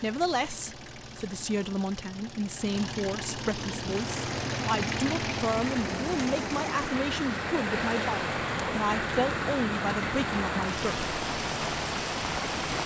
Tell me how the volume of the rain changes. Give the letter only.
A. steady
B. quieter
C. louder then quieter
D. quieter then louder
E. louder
E.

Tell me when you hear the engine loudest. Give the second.
5 s.